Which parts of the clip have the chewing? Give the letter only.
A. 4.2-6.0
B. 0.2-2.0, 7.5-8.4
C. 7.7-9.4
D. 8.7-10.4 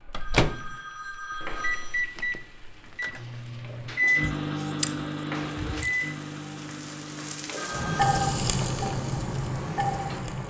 A.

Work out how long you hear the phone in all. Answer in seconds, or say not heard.
3 s.